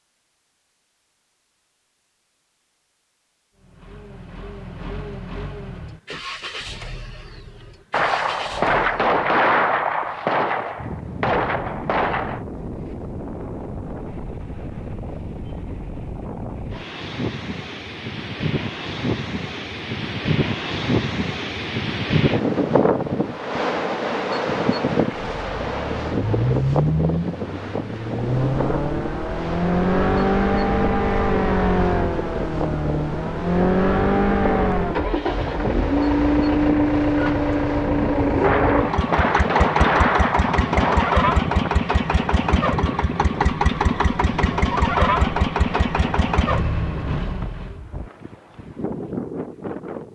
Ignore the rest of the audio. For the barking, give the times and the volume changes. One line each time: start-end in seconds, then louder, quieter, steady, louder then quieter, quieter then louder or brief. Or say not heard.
not heard.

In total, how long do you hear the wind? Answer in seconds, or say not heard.
39 s.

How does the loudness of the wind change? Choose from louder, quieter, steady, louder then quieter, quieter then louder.
louder then quieter.